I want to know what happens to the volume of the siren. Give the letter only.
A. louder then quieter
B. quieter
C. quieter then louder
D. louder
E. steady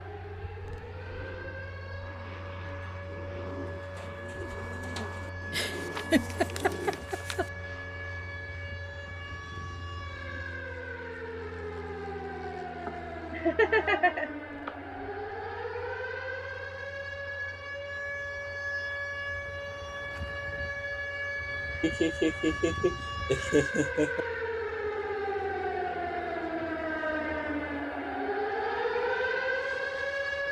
D.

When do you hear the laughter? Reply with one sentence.
The laughter can be heard from 5.5 to 7.5 s, from 12.8 to 14.7 s and from 21.8 to 24.2 s.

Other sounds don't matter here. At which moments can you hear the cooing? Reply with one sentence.
The cooing can be heard from 0.6 to 7.1 s.